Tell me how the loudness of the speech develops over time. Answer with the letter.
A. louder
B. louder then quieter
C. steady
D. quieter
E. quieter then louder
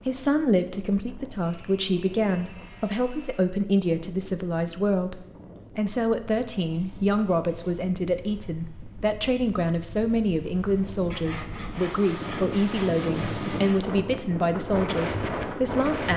C.